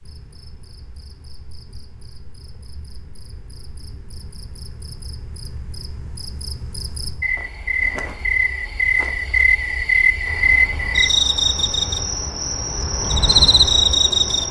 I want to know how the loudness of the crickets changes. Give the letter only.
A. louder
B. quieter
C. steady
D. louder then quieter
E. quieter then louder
A.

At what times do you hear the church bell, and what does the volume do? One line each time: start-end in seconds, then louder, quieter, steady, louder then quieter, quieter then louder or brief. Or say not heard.
not heard.